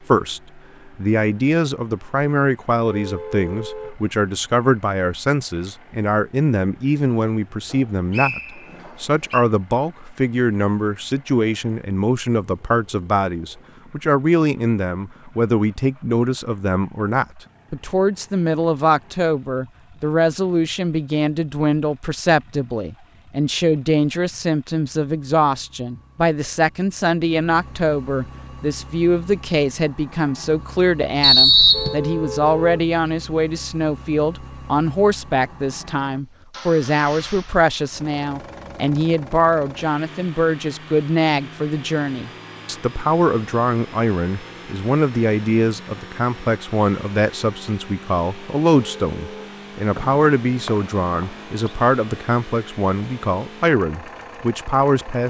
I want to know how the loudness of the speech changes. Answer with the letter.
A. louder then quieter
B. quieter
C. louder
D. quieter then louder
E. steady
E.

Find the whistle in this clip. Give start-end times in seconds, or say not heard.
7.7-9.4, 31.2-31.9, 50.0-51.8.